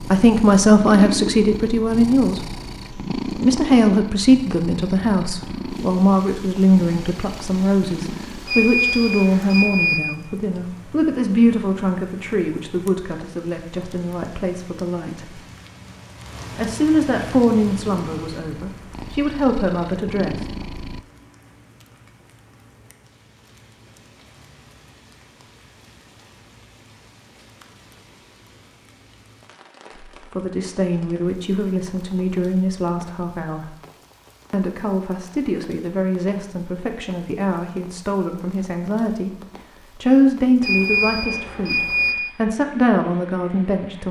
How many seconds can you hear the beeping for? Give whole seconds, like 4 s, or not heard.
3 s.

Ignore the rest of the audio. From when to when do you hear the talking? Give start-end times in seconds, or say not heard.
0.1-2.5, 3.4-15.4, 16.6-20.4, 30.2-33.8, 34.5-39.3, 40.0-44.0.